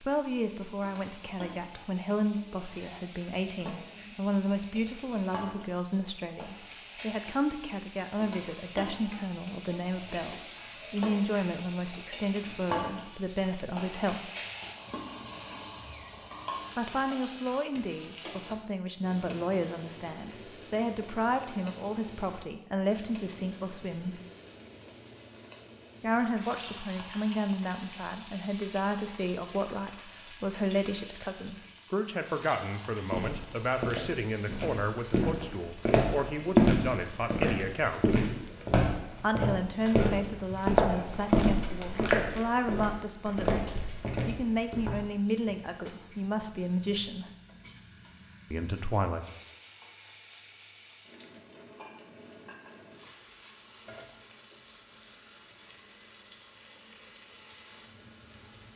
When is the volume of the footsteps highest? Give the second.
37 s.